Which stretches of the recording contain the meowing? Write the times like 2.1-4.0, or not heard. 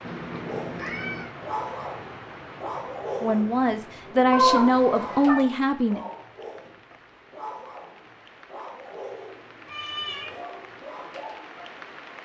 0.0-1.3, 4.3-5.4, 9.7-10.4.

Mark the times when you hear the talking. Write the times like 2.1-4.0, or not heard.
3.2-6.0.